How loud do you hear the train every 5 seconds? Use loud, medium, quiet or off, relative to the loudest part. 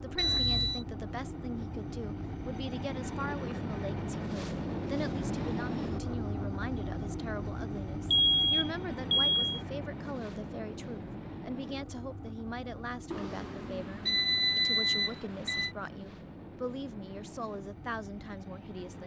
loud, loud, medium, medium.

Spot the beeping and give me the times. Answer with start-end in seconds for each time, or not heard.
0.1-0.8, 8.1-9.6, 13.1-15.7.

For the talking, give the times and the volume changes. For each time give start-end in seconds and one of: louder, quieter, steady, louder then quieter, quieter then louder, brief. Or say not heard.
0.0-19.0 steady.